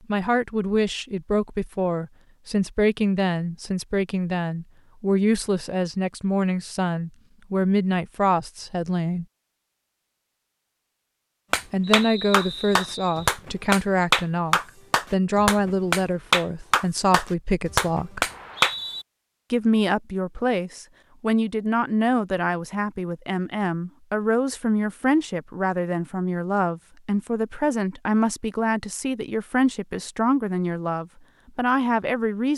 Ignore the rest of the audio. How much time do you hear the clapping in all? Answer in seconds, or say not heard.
7 s.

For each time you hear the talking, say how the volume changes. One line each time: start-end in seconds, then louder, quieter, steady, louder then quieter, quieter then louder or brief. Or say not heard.
0.1-9.2 steady
11.7-18.2 steady
19.5-32.5 steady.